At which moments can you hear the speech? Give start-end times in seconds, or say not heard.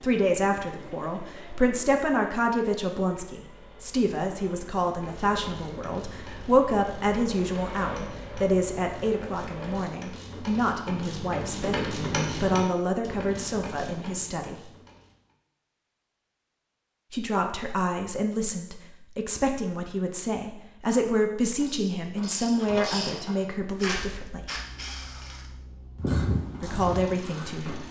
0.0-14.7, 17.1-24.4, 26.6-27.8.